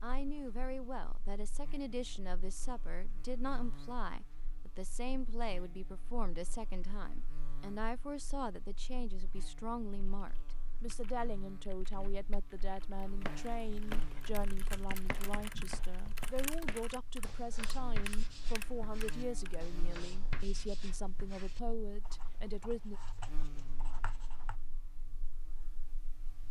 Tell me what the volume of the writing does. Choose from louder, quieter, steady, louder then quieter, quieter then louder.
quieter.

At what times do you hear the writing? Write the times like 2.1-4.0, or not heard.
13.2-24.6.